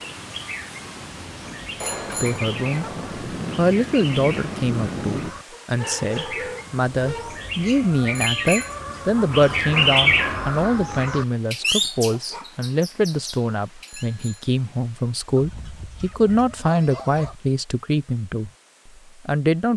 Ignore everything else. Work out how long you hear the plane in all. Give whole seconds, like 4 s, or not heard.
5 s.